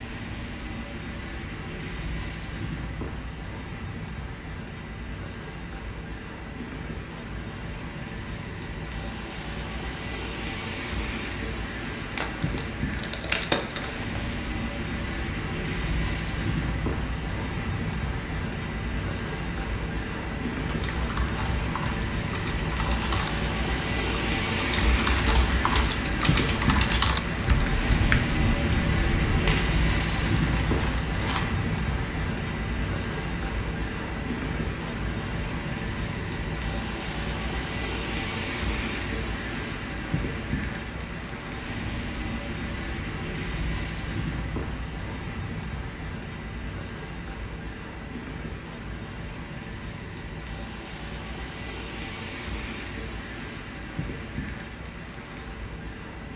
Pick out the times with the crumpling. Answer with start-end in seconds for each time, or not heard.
12.1-14.4, 29.4-31.4.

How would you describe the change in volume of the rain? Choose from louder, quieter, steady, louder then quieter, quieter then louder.
louder then quieter.